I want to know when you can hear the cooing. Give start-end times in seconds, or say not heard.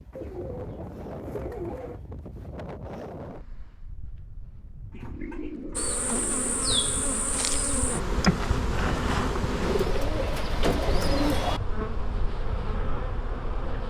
0.1-2.0, 4.9-6.5, 9.6-11.6.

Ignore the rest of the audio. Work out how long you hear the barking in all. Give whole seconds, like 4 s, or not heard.
not heard.